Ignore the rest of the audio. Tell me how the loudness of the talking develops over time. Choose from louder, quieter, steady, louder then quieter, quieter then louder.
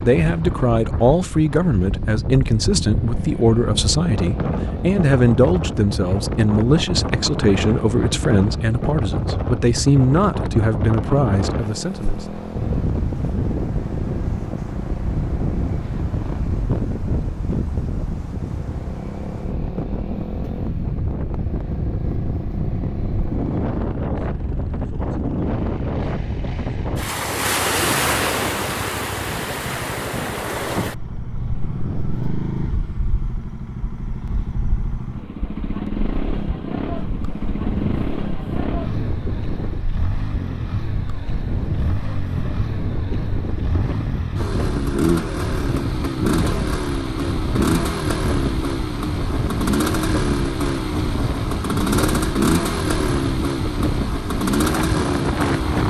steady.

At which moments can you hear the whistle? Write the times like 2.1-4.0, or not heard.
not heard.